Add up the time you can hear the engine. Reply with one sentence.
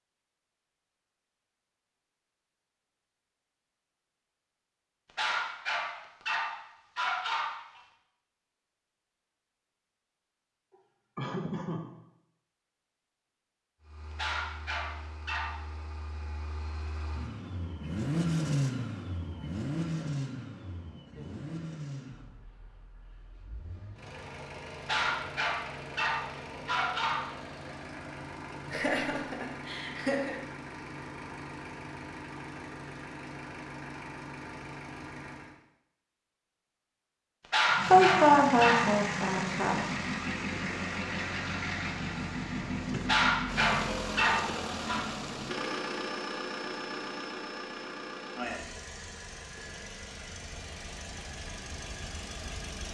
The engine can be heard for 37 seconds in total.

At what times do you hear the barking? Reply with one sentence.
You can hear the barking from 5.2 to 7.8 s, from 14.2 to 15.6 s, from 24.9 to 27.3 s, from 37.5 to 38.9 s and from 43.0 to 45.0 s.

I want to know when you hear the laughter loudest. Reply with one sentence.
The loudest moment of the laughter is at 38 seconds.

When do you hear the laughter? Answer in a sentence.
You can hear the laughter from 10.7 to 11.8 s, from 28.6 to 30.4 s and from 37.9 to 39.9 s.